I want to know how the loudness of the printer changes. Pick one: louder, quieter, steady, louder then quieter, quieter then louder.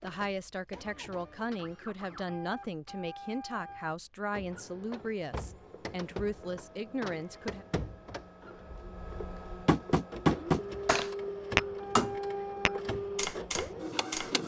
louder.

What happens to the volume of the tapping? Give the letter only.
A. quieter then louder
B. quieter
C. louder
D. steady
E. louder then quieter
E.